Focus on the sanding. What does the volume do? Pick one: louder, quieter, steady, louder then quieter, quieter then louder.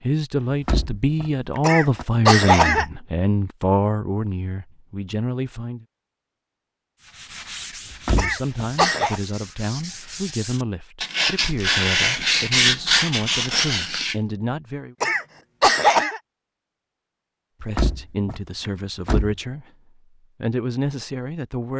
louder.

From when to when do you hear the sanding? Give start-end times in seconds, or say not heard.
7.0-14.2.